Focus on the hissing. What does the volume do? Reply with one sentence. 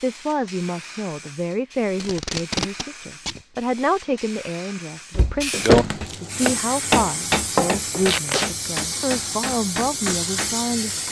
The loudness of the hissing goes up.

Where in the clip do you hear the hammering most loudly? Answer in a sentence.
The volume of the hammering peaks at 6 seconds.